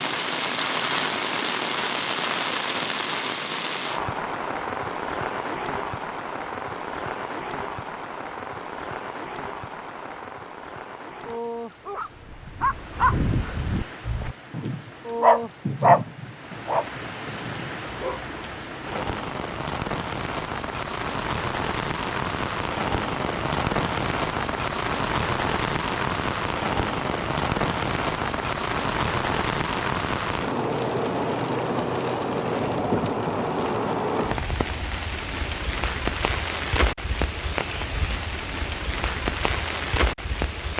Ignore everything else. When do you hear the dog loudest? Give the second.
16 s.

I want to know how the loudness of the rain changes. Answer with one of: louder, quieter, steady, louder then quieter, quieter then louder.
quieter then louder.